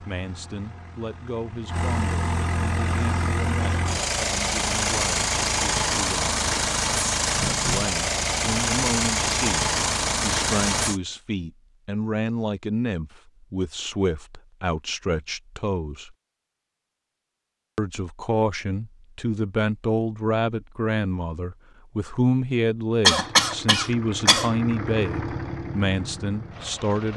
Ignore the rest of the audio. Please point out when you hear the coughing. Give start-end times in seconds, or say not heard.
23.1-24.5.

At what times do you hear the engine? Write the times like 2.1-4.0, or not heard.
0.0-11.0, 23.1-27.1.